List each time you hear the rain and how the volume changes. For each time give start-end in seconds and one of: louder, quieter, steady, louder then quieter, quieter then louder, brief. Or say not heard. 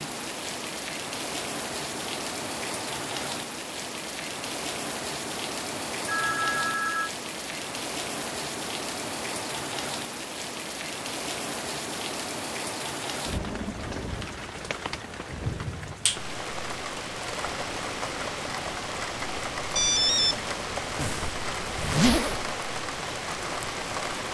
0.0-24.2 steady.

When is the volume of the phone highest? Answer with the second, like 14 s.
20 s.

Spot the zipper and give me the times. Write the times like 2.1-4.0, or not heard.
20.9-22.5.